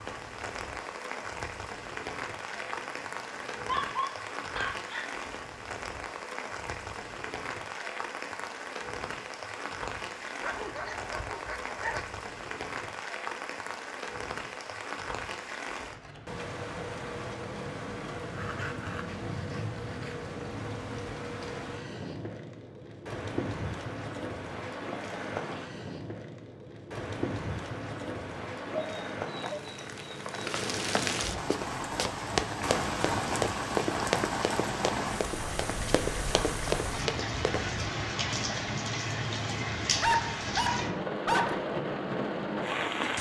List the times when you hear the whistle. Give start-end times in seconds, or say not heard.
not heard.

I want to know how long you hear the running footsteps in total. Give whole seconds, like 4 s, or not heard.
6 s.